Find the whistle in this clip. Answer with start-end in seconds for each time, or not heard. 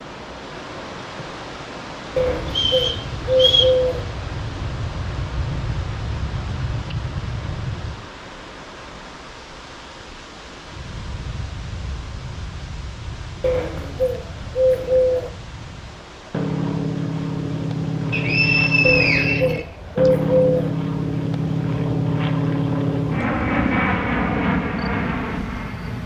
2.5-3.8, 18.1-20.1.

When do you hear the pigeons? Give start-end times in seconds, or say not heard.
2.1-4.0, 13.4-15.3, 18.8-20.7.